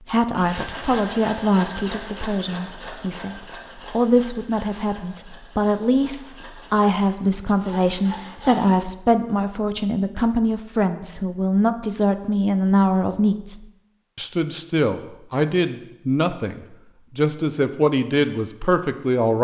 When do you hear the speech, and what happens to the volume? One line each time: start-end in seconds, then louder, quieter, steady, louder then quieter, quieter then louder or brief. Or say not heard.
0.1-19.3 steady.